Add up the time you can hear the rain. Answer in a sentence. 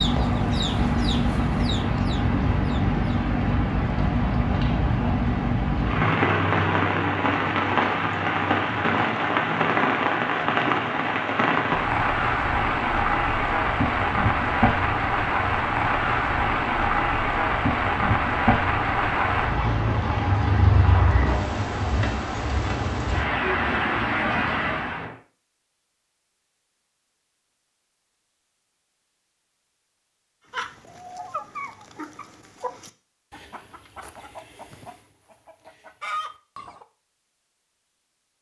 The rain can be heard for 25 seconds in total.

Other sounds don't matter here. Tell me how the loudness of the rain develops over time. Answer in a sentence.
The volume of the rain stays about the same.